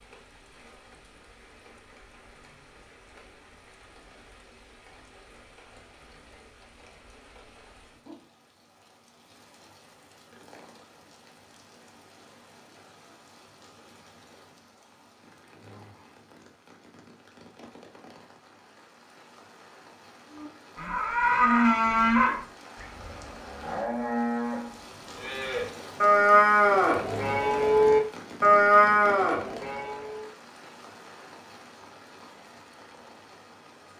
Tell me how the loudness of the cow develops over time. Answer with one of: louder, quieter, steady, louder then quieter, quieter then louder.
quieter then louder.